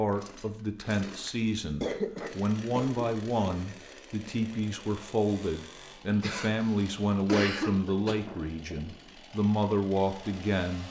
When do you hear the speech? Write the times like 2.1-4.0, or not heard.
0.0-10.8.